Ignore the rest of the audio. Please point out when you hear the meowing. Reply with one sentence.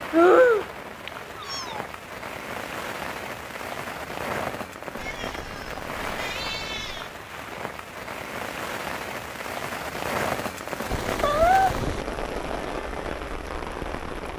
The meowing can be heard from 0.1 to 1.8 s, from 5.0 to 7.1 s and from 10.9 to 12.1 s.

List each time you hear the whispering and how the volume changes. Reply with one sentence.
You can't hear the whispering here.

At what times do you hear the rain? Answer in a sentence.
The rain can be heard from 0.0 to 14.3 s.